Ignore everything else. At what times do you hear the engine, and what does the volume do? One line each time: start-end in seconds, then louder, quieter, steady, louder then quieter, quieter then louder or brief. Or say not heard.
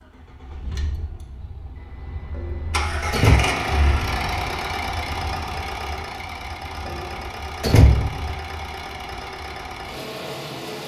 0.0-10.8 louder then quieter.